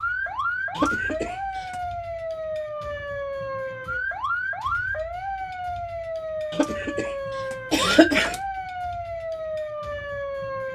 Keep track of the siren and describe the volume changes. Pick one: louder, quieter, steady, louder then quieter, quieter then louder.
steady.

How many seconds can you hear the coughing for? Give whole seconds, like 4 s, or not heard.
3 s.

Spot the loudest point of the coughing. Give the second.
8 s.